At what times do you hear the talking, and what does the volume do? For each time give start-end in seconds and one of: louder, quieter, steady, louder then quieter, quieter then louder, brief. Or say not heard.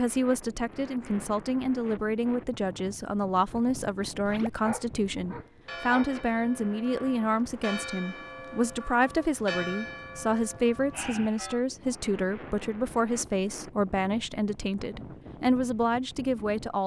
0.0-16.8 steady.